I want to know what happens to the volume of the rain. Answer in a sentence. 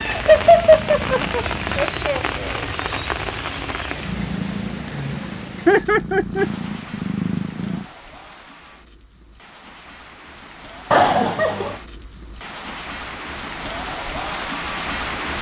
The volume of the rain goes down, then up.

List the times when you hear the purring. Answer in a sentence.
The purring can be heard from 0.0 to 1.9 s and from 4.0 to 7.8 s.